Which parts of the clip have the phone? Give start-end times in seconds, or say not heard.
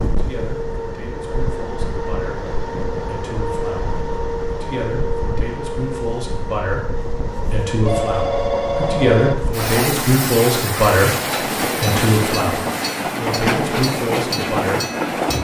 7.8-9.3.